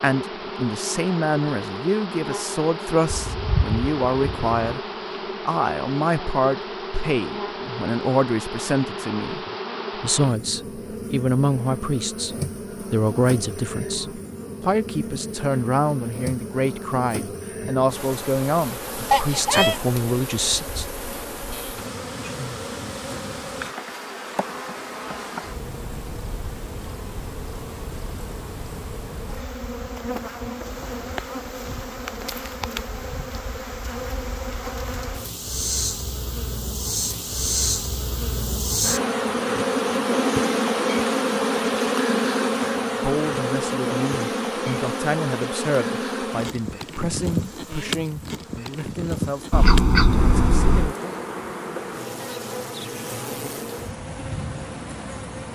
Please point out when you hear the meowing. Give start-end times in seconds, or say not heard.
3.1-4.5, 19.1-19.8, 49.5-51.0.